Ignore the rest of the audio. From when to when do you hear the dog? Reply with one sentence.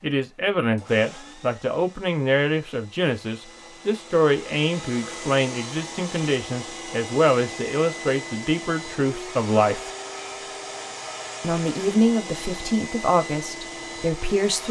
You can't hear the dog here.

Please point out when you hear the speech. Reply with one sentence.
You can hear the speech from 0.0 to 9.9 s and from 11.4 to 14.6 s.